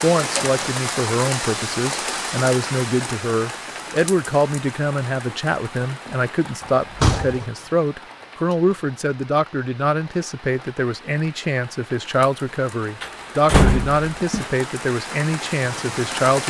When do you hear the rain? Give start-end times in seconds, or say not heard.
0.0-16.4.